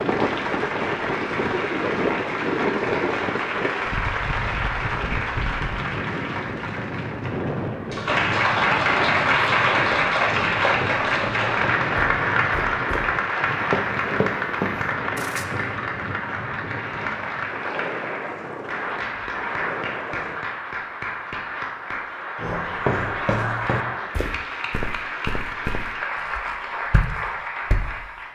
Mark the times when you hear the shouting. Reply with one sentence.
The shouting can't be heard in this clip.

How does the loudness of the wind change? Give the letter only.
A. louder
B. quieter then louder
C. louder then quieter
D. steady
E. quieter
E.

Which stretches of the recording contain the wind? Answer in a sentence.
You can hear the wind from 0.0 to 20.4 s.